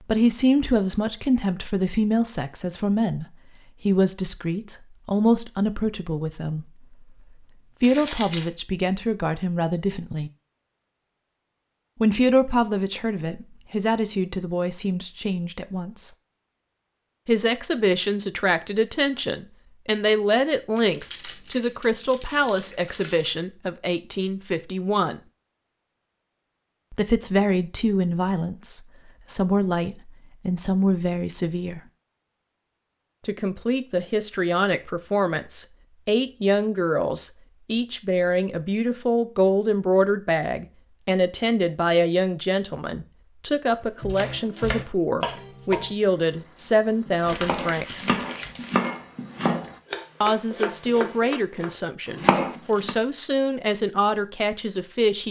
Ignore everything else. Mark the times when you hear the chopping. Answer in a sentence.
The chopping can be heard from 44.0 to 53.0 s.